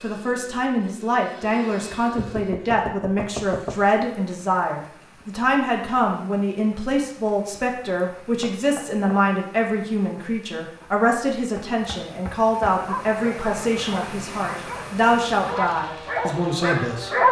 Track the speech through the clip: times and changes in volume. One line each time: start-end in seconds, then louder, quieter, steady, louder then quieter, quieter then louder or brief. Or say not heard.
0.0-17.2 steady.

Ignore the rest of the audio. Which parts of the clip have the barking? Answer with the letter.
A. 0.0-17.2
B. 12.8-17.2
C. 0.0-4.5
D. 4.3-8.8
B.